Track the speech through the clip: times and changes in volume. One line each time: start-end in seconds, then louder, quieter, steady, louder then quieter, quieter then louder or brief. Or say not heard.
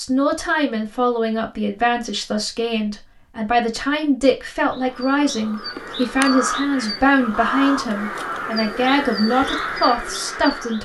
0.0-10.7 steady.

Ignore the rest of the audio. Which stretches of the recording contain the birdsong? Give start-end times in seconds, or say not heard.
4.7-10.7.